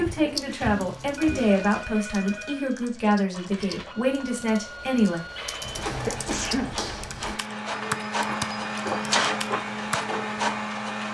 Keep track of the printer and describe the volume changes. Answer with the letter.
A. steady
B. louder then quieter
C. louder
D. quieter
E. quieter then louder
C.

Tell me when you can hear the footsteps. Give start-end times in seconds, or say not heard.
0.0-1.5, 5.5-10.4.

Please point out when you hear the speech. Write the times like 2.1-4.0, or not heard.
0.0-5.2.